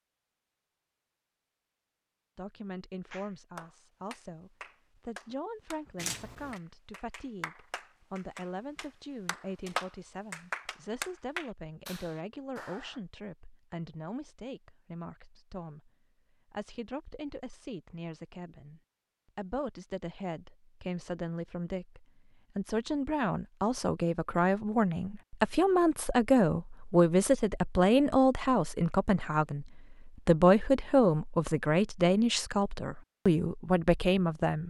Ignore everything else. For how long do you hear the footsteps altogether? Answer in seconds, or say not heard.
not heard.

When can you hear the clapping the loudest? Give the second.
10 s.